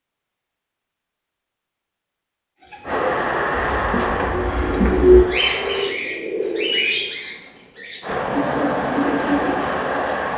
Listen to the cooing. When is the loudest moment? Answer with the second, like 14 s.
5 s.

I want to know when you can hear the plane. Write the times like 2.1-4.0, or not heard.
2.9-5.9, 8.0-10.3.